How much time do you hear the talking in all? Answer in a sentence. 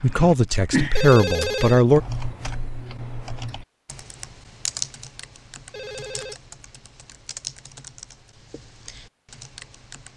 The talking can be heard for 2 seconds in total.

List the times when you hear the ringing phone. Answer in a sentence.
The ringing phone can be heard from 0.9 to 1.9 s and from 5.7 to 6.3 s.